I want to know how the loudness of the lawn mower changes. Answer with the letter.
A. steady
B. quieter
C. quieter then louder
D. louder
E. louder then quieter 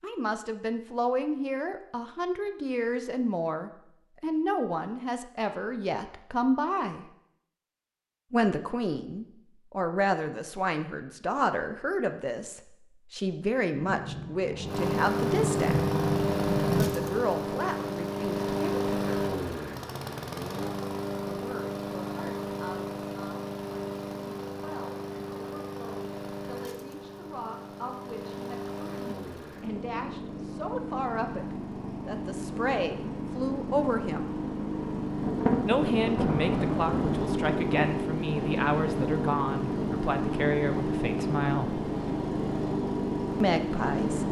C.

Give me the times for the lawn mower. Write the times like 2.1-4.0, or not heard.
14.7-44.2.